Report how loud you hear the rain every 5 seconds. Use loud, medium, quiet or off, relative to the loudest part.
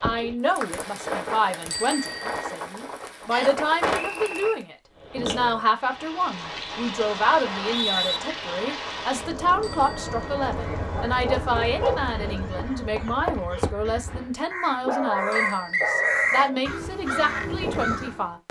loud, loud, loud, off.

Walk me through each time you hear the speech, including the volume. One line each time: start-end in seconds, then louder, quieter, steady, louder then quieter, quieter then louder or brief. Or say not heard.
0.0-18.4 steady.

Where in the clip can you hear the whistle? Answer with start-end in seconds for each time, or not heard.
3.3-4.5, 7.4-8.2, 15.3-16.4.